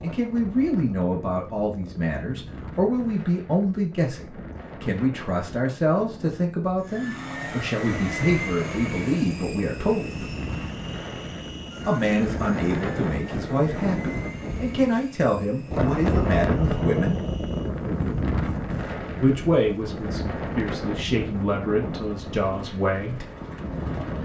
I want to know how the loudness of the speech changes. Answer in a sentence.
The volume of the speech stays about the same.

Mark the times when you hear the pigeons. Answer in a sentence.
The pigeons can't be heard in this clip.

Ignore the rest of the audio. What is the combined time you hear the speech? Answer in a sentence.
You can hear the speech for 20 seconds altogether.